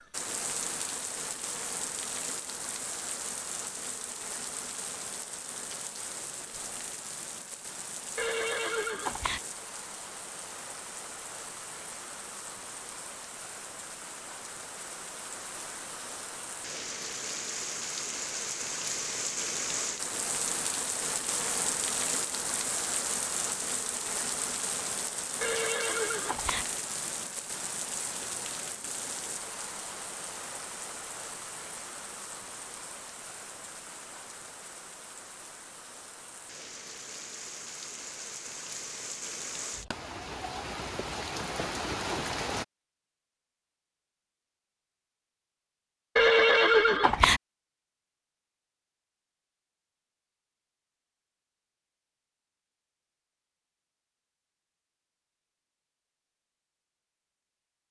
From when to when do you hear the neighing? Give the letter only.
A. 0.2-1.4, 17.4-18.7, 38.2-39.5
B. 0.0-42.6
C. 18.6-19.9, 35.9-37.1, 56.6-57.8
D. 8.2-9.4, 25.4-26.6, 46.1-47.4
D.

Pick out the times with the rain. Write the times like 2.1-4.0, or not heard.
0.0-42.6.